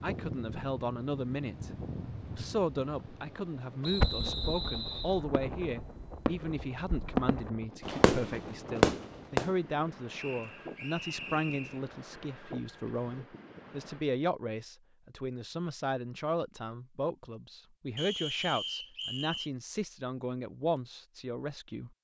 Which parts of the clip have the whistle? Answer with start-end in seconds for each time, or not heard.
3.8-5.2, 10.2-11.8, 17.9-19.5.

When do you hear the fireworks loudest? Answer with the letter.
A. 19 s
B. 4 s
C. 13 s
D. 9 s
D.